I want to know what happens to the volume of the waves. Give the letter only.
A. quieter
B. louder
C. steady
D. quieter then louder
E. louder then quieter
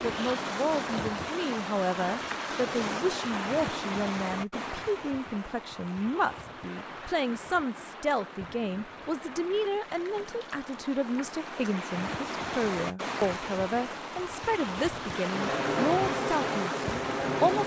D.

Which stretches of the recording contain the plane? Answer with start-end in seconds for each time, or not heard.
15.3-17.6.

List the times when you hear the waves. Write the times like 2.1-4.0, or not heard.
0.0-17.6.